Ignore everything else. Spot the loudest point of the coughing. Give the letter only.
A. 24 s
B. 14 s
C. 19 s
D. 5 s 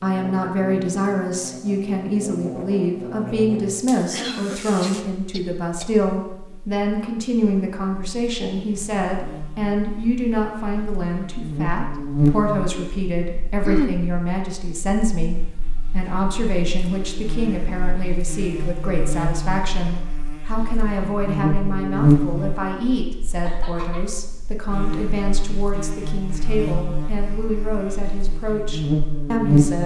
B.